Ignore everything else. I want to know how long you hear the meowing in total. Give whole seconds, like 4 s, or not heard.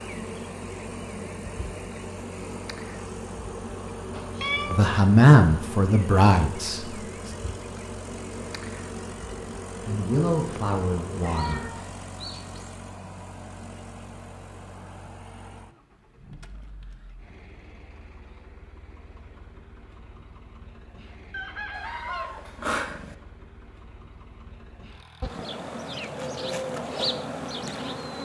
4 s.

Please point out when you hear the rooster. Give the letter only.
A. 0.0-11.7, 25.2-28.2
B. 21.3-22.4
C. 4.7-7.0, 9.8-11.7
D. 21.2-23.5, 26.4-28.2
B.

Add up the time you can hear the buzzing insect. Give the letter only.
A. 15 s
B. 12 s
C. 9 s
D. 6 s
A.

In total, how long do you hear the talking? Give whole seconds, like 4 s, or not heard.
4 s.